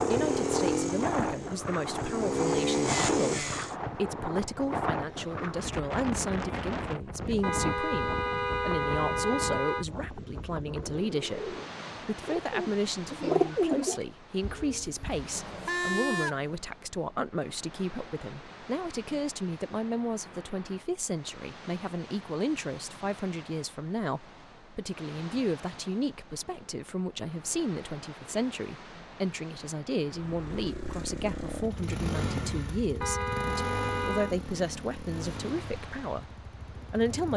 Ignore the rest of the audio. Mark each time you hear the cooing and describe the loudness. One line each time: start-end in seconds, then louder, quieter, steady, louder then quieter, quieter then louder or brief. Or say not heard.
10.2-15.4 louder then quieter.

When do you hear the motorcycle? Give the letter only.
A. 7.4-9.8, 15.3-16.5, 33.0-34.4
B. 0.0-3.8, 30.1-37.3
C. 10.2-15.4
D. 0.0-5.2
B.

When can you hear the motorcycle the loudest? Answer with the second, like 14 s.
3 s.